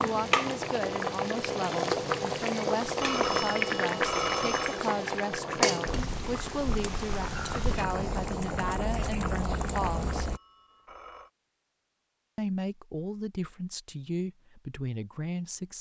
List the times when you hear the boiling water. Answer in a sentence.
You can hear the boiling water from 0.0 to 10.4 s.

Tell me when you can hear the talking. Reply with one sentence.
You can hear the talking from 0.0 to 10.2 s and from 12.3 to 15.7 s.